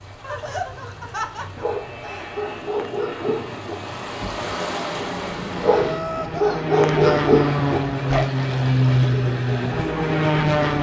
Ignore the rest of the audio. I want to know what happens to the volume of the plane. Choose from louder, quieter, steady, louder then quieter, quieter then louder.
louder.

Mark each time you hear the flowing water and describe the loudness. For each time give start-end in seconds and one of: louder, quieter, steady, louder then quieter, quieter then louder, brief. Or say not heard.
0.0-5.7 louder.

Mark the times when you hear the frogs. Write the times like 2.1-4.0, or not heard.
not heard.